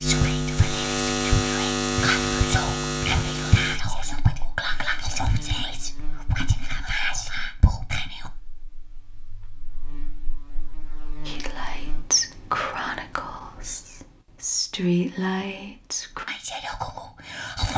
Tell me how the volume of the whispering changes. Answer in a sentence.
The volume of the whispering stays about the same.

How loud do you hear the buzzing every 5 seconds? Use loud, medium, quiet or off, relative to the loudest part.
loud, quiet, quiet, off.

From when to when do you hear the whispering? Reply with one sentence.
You can hear the whispering from 0.0 to 8.3 s and from 11.2 to 17.7 s.